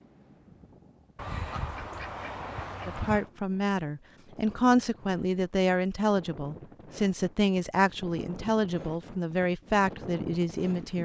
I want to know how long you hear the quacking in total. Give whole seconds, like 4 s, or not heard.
2 s.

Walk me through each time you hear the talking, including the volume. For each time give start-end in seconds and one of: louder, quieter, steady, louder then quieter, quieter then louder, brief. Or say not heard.
2.9-10.9 steady.